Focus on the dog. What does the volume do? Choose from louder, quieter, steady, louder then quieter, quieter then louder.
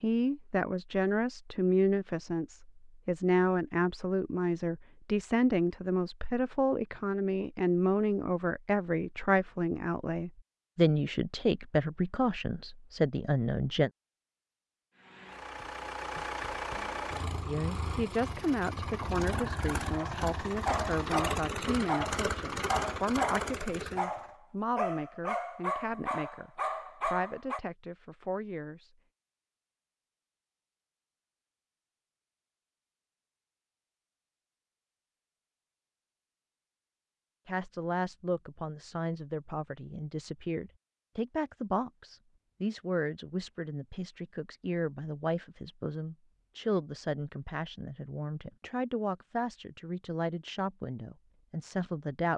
steady.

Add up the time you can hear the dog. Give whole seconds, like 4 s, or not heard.
8 s.